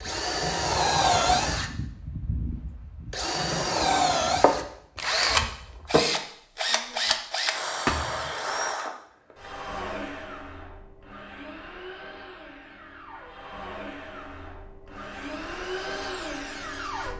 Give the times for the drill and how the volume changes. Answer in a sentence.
The drill can be heard from 0.0 to 17.1 s, getting quieter then louder.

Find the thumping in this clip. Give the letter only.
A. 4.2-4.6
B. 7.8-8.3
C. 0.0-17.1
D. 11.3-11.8
B.